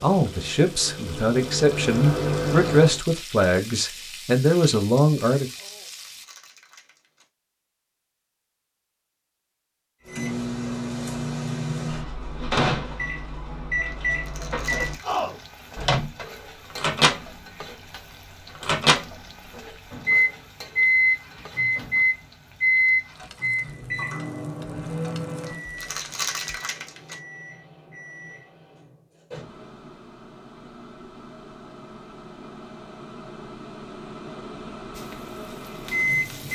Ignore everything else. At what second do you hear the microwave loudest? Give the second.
21 s.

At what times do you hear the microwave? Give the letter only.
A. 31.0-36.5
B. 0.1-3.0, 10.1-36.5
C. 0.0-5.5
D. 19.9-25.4
B.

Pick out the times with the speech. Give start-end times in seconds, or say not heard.
0.0-5.5.